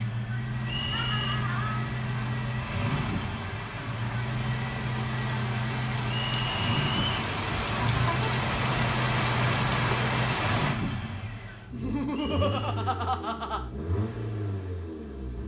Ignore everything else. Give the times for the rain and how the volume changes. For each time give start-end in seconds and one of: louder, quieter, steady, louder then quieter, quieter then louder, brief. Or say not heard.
0.0-10.8 louder.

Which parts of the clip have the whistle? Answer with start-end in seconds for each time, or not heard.
0.7-1.4, 6.1-7.1, 12.1-12.8.